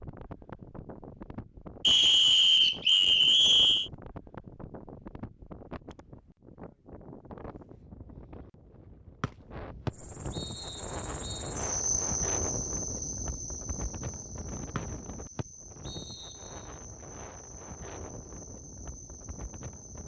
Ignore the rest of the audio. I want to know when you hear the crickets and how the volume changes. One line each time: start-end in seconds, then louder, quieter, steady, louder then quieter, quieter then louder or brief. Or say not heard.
9.9-20.0 quieter.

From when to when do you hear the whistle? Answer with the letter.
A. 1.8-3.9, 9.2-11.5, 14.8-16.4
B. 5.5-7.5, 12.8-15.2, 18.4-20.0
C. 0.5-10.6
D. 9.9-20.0
A.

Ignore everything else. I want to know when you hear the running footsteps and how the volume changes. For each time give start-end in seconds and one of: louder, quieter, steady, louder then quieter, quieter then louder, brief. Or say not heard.
not heard.